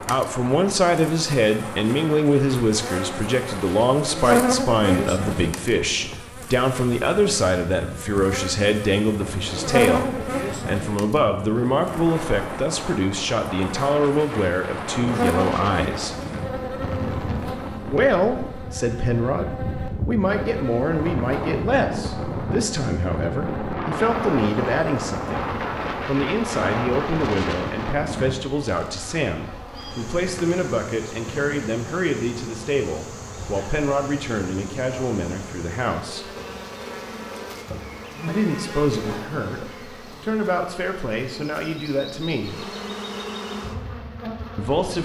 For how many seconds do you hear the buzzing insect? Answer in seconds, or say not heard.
45 s.